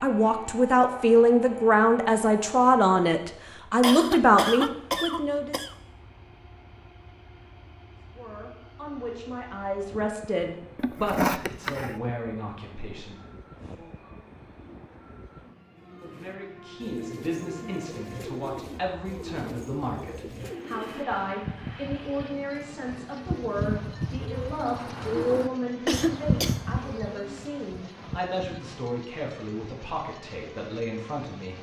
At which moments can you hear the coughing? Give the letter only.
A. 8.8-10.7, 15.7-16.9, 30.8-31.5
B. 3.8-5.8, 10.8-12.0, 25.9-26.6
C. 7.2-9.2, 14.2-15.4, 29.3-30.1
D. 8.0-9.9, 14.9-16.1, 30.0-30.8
B.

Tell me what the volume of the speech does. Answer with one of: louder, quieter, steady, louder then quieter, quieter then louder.
quieter.